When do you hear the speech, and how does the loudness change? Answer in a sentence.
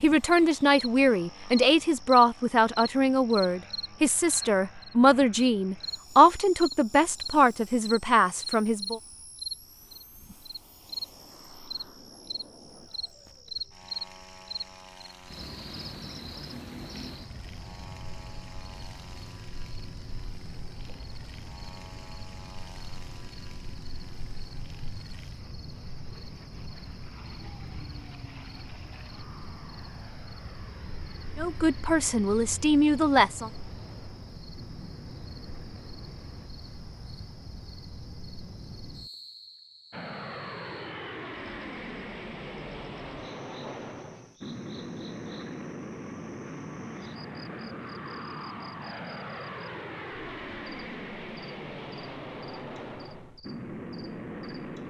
You can hear the speech from 0.0 to 9.0 s, at a steady volume; and briefly from 31.4 to 33.5 s.